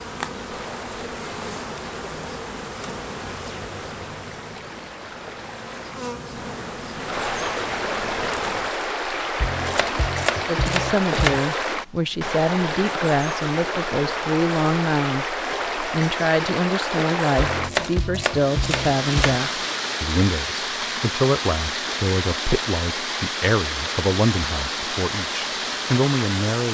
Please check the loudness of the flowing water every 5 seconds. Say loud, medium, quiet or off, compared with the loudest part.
quiet, loud, loud, loud, loud, loud.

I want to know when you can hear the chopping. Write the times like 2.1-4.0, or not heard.
9.4-11.4, 17.4-19.4.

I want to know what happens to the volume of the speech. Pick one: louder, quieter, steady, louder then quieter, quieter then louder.
steady.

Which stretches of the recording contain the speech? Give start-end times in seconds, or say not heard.
10.4-26.6.